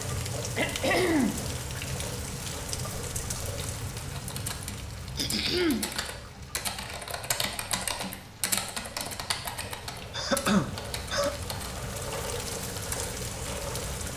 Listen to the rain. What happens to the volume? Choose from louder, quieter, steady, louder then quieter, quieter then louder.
quieter then louder.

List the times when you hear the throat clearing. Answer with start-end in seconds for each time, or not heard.
0.6-1.4, 5.2-5.8, 10.1-11.3.